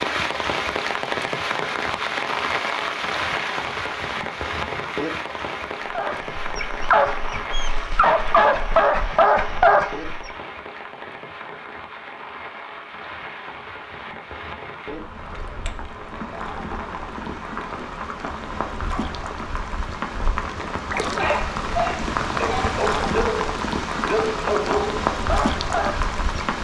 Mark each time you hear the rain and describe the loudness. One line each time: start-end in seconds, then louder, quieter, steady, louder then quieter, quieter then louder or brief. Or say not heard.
0.0-26.5 quieter then louder.